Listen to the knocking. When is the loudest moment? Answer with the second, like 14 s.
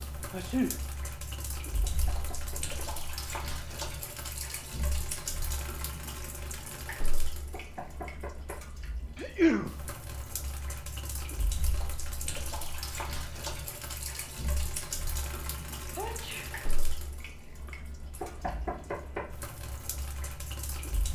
19 s.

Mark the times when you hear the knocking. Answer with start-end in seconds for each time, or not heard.
1.8-3.0, 7.5-8.7, 18.2-19.4.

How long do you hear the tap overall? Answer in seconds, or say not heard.
21 s.